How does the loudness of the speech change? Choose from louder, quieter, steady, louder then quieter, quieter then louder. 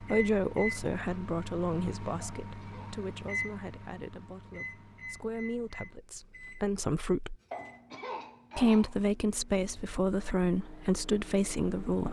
quieter then louder.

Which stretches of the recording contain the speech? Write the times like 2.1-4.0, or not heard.
0.0-7.3, 8.6-12.0.